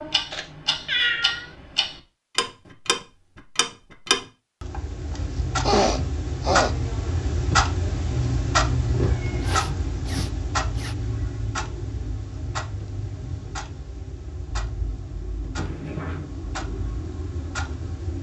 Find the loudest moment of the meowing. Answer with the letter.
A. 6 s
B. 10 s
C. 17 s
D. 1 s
D.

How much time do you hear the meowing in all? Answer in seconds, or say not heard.
3 s.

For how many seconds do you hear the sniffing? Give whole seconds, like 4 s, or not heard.
3 s.